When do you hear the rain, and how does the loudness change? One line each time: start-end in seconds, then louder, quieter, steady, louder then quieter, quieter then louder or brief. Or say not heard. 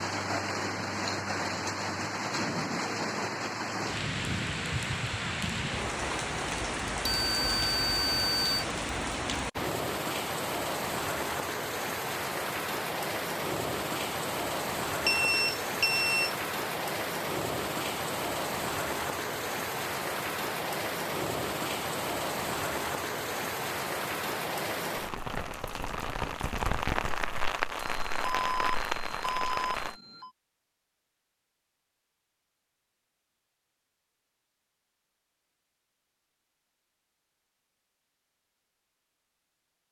0.0-29.9 steady.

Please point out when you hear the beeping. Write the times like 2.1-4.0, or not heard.
7.0-8.7, 15.1-16.3, 27.8-30.3.